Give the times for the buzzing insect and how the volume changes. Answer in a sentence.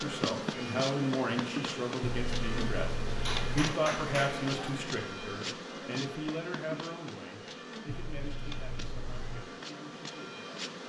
You can hear the buzzing insect from 0.0 to 10.8 s, getting quieter.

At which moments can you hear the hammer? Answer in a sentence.
You can hear the hammer from 3.2 to 4.8 s.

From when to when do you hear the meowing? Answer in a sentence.
You can hear the meowing from 2.1 to 3.7 s and from 7.8 to 9.4 s.